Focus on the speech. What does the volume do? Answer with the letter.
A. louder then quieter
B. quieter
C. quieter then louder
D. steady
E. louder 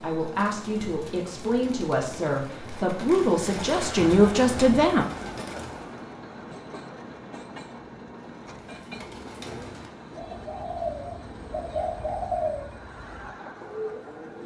E.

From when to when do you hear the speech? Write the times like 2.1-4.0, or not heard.
0.0-5.0.